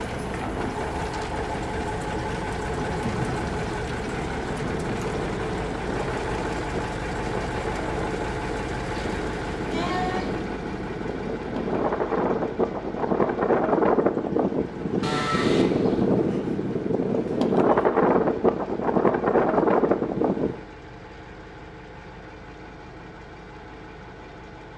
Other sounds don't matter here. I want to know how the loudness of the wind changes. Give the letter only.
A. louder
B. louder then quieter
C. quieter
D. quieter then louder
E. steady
A.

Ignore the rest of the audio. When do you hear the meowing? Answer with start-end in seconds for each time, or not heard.
not heard.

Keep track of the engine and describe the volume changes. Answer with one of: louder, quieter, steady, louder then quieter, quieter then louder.
quieter.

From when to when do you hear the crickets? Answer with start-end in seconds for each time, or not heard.
not heard.